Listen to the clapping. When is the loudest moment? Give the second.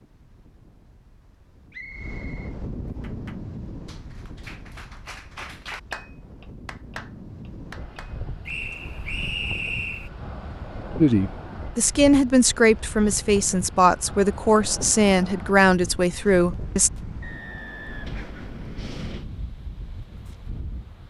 6 s.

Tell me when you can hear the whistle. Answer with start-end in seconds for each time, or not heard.
1.7-3.1, 8.4-10.1, 17.2-18.3.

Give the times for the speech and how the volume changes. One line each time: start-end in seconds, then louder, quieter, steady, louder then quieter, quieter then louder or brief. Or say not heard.
10.9-16.9 steady.